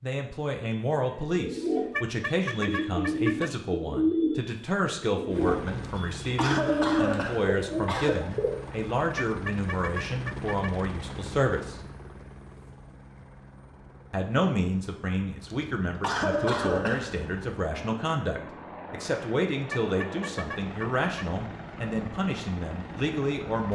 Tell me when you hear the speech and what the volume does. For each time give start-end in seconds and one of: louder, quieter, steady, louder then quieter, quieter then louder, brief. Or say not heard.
0.0-11.8 steady
14.1-23.7 steady.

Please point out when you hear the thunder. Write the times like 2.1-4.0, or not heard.
not heard.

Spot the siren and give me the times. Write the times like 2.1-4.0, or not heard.
not heard.